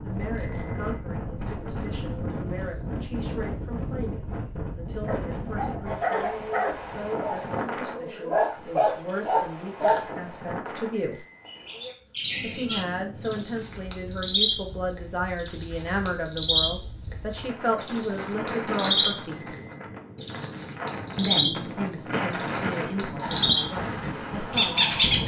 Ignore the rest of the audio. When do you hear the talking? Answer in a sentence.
You can hear the talking from 0.0 to 11.2 s, from 12.4 to 19.6 s and from 21.1 to 25.0 s.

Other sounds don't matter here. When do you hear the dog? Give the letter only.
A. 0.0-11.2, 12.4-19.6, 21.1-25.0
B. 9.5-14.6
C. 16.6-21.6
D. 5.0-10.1
D.